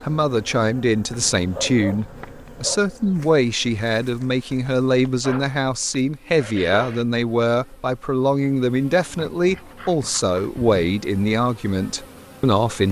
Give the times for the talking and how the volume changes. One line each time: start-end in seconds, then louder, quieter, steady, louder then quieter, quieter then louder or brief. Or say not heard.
0.0-12.8 steady.